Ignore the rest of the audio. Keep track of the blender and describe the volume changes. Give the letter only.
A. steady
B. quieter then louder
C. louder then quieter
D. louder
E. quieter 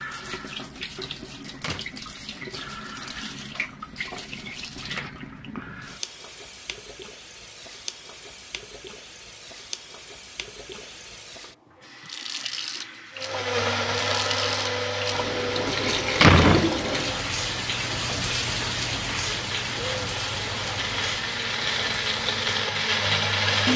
B.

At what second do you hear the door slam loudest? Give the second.
16 s.